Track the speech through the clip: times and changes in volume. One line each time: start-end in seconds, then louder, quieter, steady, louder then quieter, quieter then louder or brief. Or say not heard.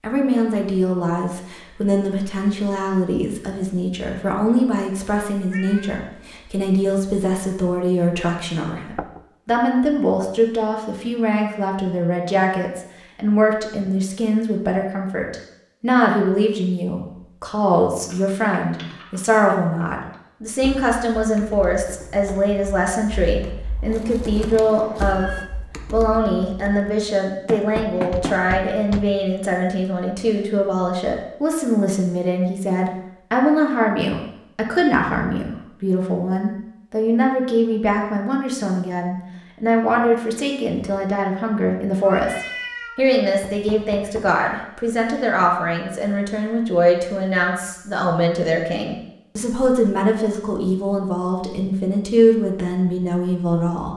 0.0-25.3 steady
25.9-53.9 steady.